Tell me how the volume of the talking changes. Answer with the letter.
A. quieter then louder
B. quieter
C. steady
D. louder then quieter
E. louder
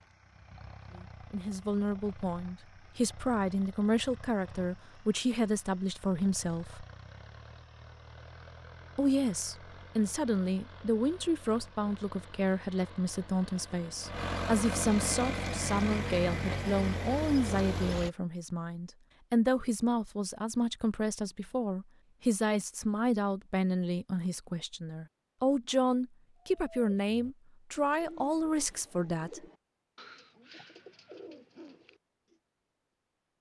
C.